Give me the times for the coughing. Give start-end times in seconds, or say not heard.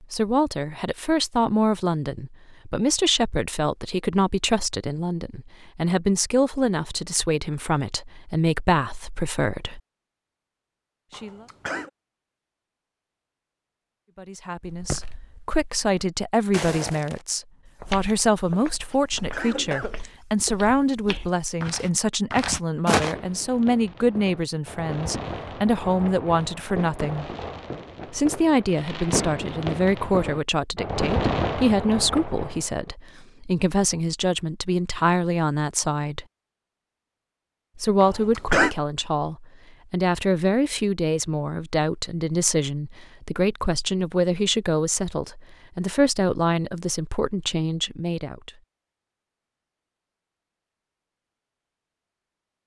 11.1-11.9, 18.8-20.0, 38.0-38.8.